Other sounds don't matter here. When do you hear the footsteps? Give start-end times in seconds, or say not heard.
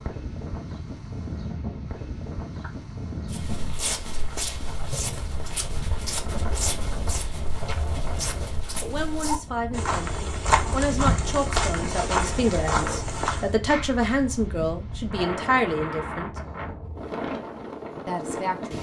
3.2-13.5.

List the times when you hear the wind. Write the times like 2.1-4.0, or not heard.
0.0-18.7.